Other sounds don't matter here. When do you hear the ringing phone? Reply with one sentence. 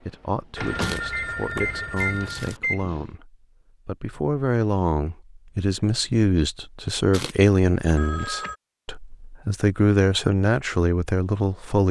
The ringing phone can be heard from 0.6 to 2.5 s and from 8.0 to 8.6 s.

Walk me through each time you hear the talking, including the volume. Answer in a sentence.
You can hear the talking from 0.0 to 11.8 s, getting louder.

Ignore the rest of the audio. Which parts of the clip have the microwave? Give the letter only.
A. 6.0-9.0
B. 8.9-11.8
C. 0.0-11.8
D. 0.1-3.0
D.